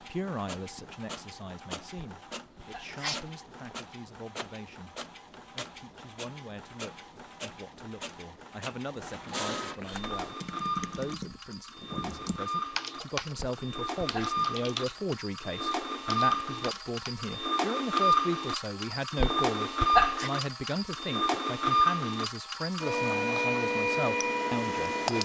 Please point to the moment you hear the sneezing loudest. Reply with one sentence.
The volume of the sneezing peaks at 20 seconds.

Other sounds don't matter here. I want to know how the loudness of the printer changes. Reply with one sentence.
The loudness of the printer goes up.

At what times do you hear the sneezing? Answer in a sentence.
The sneezing can be heard from 1.9 to 3.8 s, from 13.3 to 14.4 s and from 19.2 to 20.3 s.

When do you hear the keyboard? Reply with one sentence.
You can hear the keyboard from 9.9 to 18.0 s.